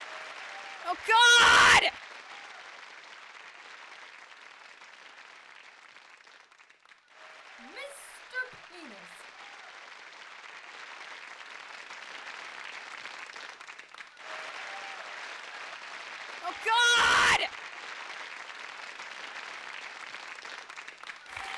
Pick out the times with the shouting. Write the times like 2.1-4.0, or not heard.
0.8-1.9, 7.6-9.2, 16.4-17.5.